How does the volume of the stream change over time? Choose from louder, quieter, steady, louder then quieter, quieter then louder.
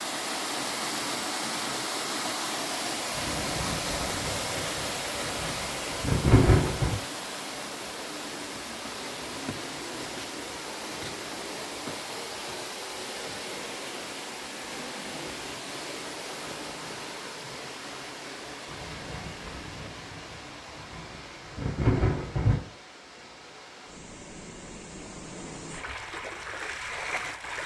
quieter.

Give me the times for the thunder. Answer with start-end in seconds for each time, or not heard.
3.1-7.0, 18.7-22.6.